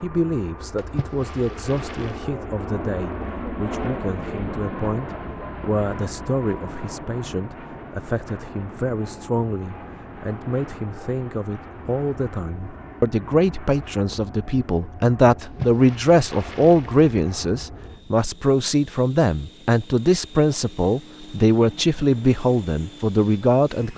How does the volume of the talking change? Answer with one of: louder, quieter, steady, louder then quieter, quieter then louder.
louder.